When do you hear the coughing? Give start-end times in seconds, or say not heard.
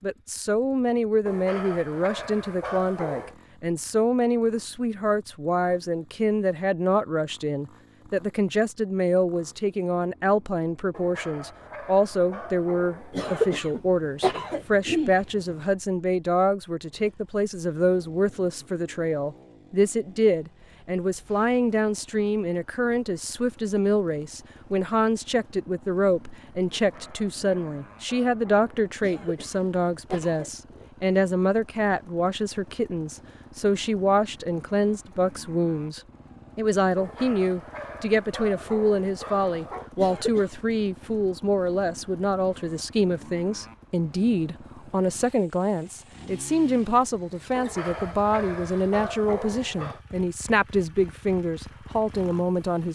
13.1-15.2, 29.0-30.5, 40.0-40.5.